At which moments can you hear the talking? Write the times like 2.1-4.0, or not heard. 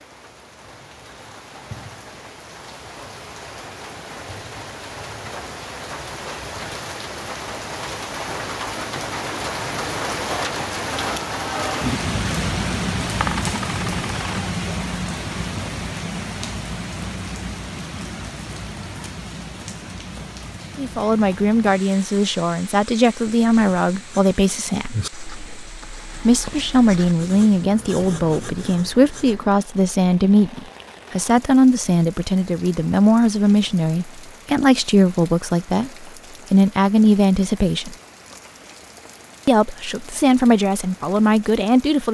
20.8-24.9, 26.2-38.0, 39.5-42.0.